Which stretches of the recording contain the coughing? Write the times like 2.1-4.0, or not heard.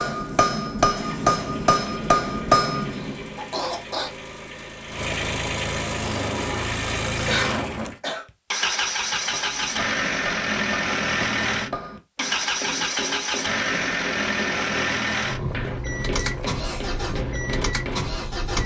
3.0-4.1, 7.2-8.2, 16.1-16.9.